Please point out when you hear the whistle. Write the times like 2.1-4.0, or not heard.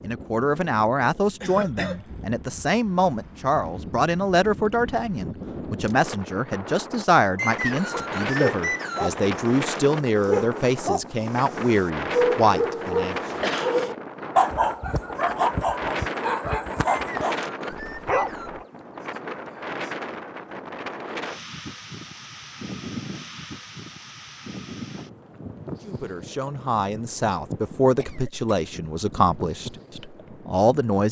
7.3-9.2, 16.9-18.5.